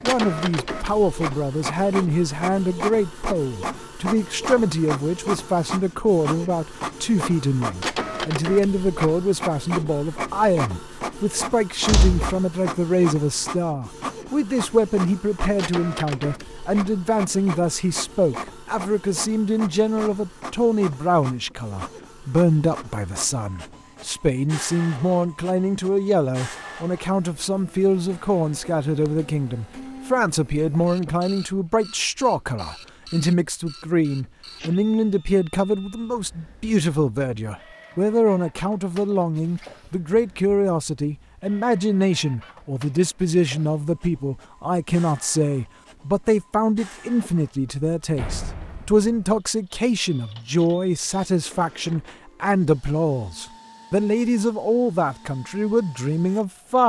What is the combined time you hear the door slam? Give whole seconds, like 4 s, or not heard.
2 s.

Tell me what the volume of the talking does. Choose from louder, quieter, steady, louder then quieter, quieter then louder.
steady.